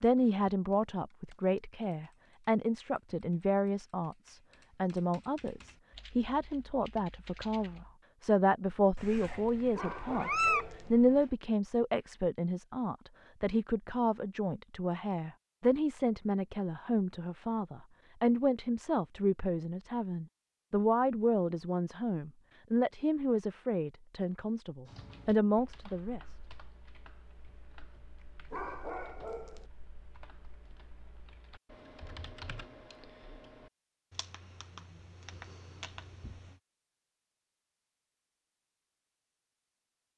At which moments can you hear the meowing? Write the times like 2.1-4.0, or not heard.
8.9-11.2.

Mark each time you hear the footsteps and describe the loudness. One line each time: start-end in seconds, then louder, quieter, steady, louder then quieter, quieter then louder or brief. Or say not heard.
not heard.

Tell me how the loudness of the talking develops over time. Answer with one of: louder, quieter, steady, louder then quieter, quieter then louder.
steady.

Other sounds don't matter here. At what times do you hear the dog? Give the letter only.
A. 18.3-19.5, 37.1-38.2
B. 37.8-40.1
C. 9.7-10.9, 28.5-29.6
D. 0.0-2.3
C.